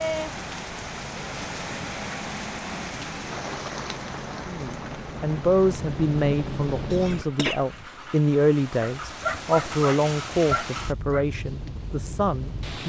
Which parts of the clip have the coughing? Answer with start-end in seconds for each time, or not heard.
6.9-7.7.